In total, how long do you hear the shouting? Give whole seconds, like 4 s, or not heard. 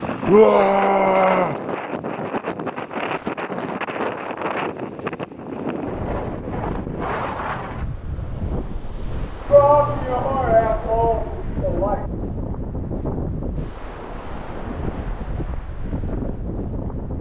4 s.